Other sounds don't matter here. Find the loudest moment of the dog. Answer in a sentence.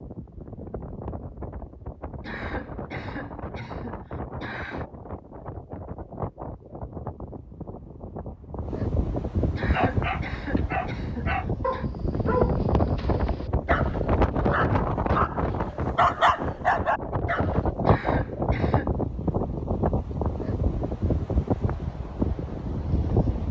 The volume of the dog peaks at 16 seconds.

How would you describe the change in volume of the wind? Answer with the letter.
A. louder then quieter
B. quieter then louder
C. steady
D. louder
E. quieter
D.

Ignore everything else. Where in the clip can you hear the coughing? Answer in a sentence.
You can hear the coughing from 2.2 to 4.8 s, from 9.6 to 11.8 s and from 17.9 to 18.9 s.